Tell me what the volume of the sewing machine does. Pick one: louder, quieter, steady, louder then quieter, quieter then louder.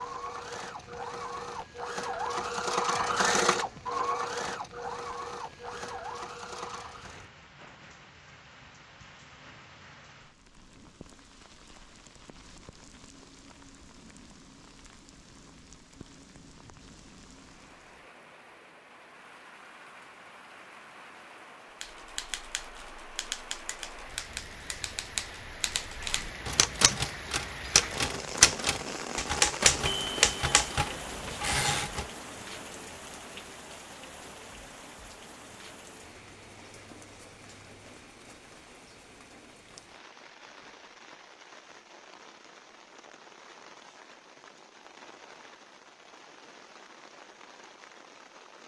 louder then quieter.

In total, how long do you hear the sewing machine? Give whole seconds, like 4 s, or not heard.
7 s.